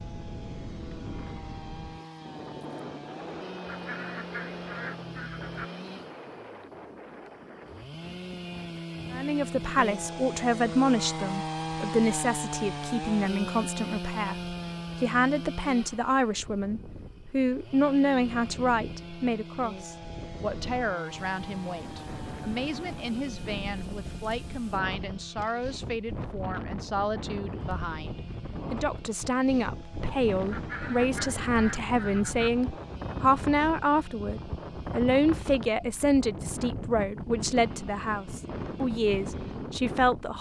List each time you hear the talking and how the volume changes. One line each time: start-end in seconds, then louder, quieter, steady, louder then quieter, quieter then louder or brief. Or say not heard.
9.1-40.3 quieter then louder.